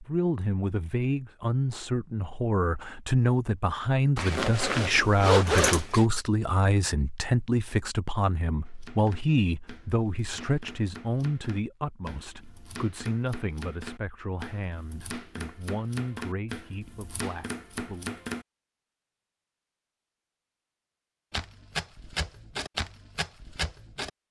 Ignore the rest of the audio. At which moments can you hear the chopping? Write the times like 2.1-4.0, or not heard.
8.7-18.4, 21.3-24.1.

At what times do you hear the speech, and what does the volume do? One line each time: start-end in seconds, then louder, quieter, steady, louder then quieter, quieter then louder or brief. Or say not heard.
0.0-18.1 quieter.